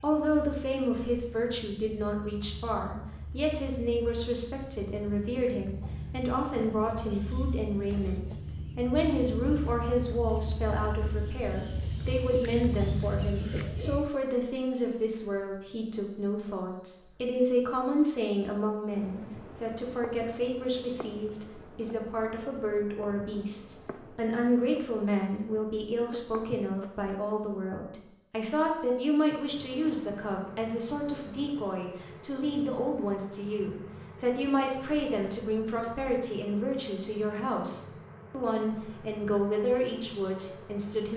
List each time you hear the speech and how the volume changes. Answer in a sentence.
You can hear the speech from 0.0 to 41.1 s, at a steady volume.